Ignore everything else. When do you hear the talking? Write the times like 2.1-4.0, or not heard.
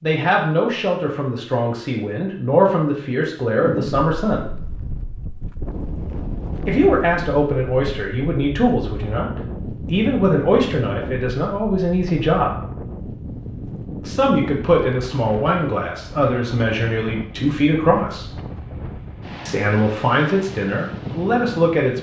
0.0-4.5, 6.7-12.7, 14.1-18.4, 19.4-21.9.